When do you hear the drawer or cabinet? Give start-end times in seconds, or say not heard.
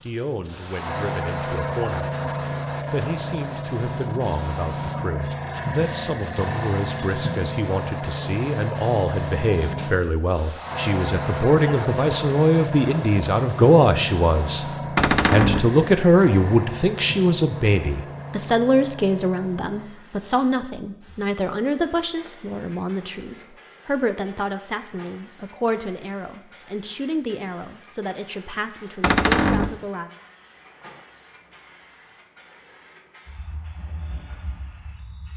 14.9-15.7, 29.0-29.8.